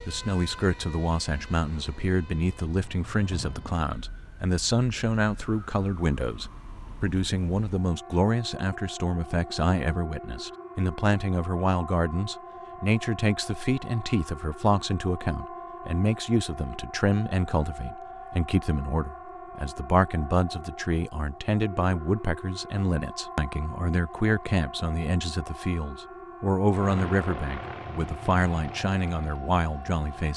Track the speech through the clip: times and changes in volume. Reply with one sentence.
You can hear the speech from 0.1 to 30.3 s, at a steady volume.